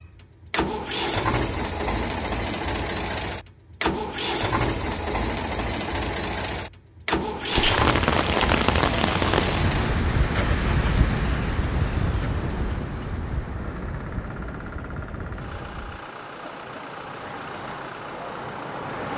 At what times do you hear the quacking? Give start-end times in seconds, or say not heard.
not heard.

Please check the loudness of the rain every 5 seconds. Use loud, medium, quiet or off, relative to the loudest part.
off, loud, medium, quiet.